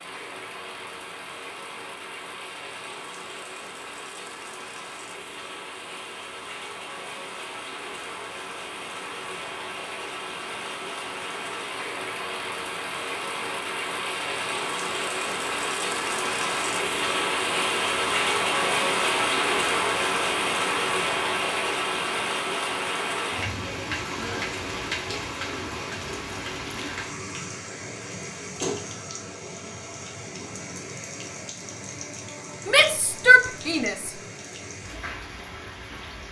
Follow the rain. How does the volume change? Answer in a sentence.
The loudness of the rain goes up, then down.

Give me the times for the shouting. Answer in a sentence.
The shouting can be heard from 32.6 to 34.1 s.